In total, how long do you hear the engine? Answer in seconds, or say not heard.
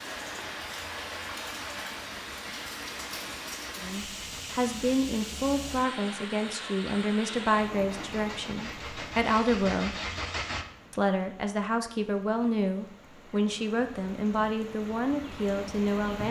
8 s.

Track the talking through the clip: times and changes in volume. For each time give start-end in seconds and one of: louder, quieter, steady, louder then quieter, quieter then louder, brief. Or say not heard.
3.8-9.9 steady
10.9-16.2 steady.